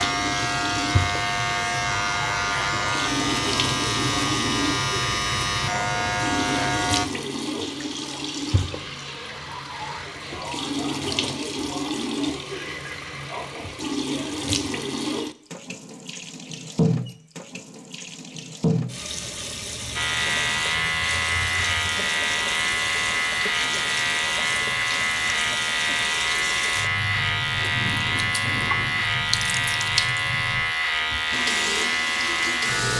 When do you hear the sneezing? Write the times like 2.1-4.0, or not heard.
not heard.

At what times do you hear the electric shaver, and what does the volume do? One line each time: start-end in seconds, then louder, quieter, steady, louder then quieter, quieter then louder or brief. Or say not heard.
0.0-7.1 steady
19.9-32.9 steady.